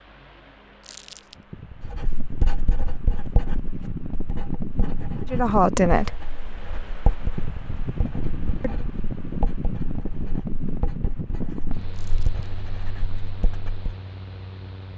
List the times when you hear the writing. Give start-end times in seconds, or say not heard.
1.8-13.9.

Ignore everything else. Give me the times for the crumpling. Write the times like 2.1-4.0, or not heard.
0.8-1.4, 11.9-12.4.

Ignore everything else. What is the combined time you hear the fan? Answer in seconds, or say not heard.
15 s.